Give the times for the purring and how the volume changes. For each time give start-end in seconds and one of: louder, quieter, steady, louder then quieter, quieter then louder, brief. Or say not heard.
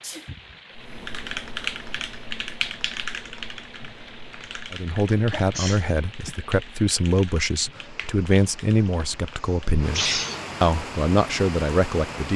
not heard.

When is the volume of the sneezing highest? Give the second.
10 s.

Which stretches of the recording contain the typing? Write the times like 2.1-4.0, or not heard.
0.8-9.8.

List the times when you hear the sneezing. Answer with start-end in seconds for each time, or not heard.
0.0-0.6, 5.1-6.3, 8.8-10.6.